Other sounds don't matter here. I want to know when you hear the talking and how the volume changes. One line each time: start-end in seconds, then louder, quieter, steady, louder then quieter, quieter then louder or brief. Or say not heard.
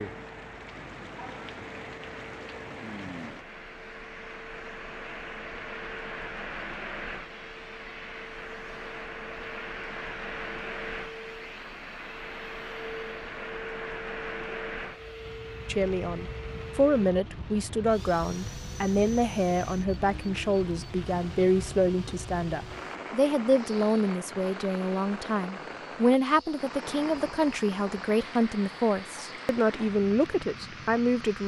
15.7-31.4 steady.